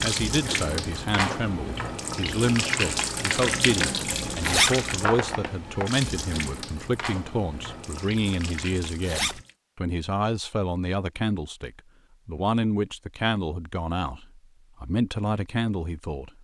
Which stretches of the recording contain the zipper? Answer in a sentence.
You can hear the zipper from 4.0 to 4.7 s and from 8.6 to 9.4 s.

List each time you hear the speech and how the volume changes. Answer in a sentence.
You can hear the speech from 0.0 to 16.3 s, at a steady volume.